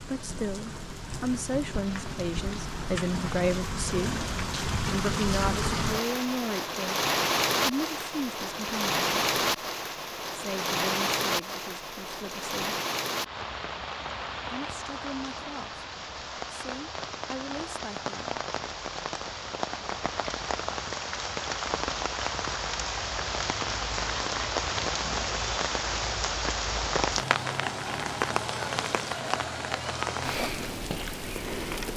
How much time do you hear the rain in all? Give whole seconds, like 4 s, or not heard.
32 s.